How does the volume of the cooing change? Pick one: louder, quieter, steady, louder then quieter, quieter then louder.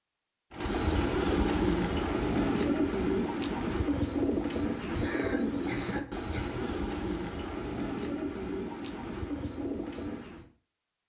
quieter.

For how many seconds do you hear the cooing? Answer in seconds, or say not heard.
10 s.